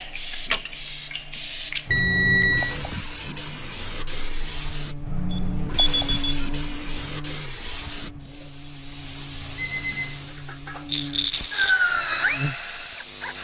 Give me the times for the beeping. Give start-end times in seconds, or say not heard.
1.9-2.8, 5.3-6.4, 9.6-10.2.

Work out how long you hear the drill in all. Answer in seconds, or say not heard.
2 s.